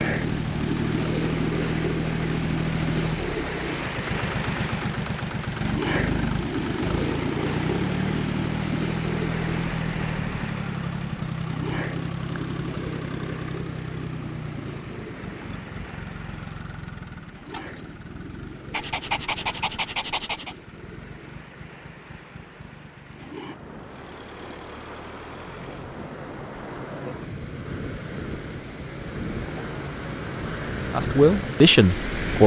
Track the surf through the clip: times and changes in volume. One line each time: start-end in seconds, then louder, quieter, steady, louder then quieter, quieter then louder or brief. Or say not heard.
0.0-32.4 quieter then louder.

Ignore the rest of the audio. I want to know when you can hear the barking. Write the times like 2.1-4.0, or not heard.
18.7-20.6.